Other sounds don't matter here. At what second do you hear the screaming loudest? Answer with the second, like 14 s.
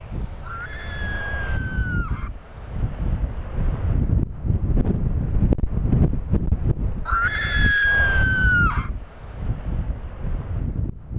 8 s.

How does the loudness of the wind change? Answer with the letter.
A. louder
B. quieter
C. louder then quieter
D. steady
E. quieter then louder
C.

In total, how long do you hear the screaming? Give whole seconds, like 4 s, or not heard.
4 s.